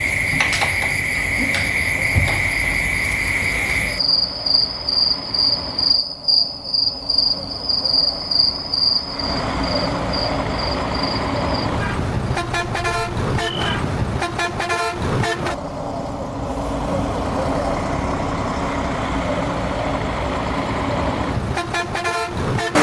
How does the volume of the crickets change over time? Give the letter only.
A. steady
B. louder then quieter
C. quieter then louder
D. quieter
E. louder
D.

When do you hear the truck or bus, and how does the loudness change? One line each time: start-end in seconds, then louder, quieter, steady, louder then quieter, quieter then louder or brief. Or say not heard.
0.0-22.7 louder.